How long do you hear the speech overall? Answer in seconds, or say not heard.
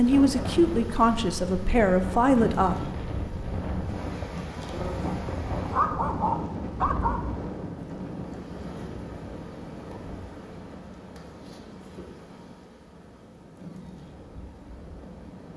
3 s.